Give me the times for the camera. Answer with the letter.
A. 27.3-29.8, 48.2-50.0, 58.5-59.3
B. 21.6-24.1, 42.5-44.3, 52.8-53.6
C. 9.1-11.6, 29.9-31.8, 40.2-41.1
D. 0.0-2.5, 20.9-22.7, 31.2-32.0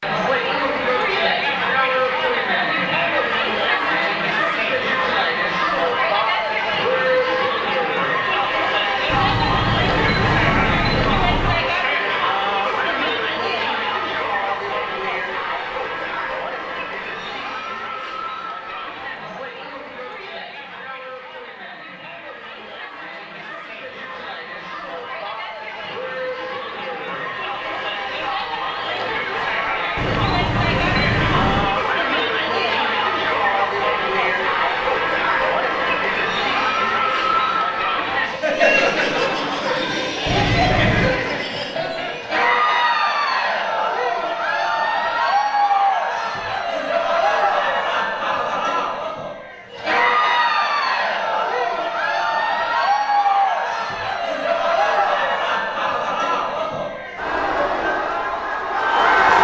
C.